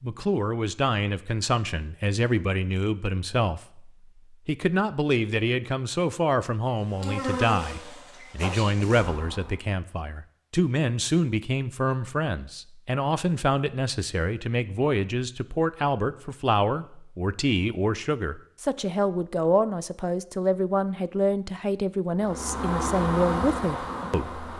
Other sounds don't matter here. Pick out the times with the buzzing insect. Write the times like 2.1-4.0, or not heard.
6.8-9.6, 22.2-24.5.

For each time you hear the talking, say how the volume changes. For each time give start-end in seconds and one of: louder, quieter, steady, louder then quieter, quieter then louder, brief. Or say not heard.
0.0-24.4 steady.